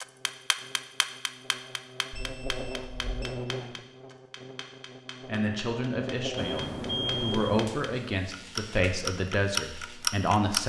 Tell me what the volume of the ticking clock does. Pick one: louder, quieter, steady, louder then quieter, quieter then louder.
quieter then louder.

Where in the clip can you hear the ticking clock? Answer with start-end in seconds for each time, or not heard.
0.0-10.6.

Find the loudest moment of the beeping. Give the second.
7 s.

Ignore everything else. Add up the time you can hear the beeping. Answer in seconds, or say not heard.
3 s.